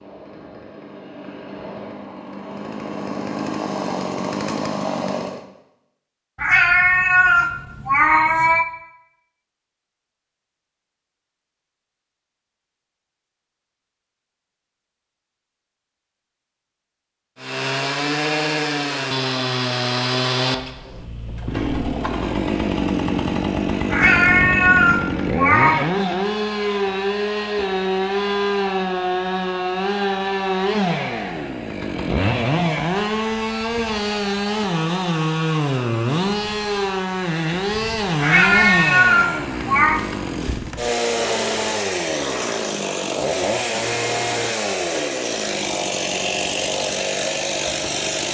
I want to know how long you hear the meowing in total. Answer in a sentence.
The meowing can be heard for 6 seconds in total.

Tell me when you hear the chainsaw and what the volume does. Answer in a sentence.
The chainsaw can be heard from 0.0 to 5.5 s, getting louder; and from 17.4 to 48.2 s, at a steady volume.